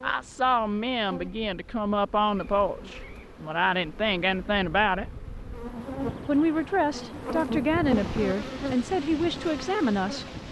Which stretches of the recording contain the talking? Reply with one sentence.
You can hear the talking from 0.0 to 5.2 s and from 6.2 to 10.2 s.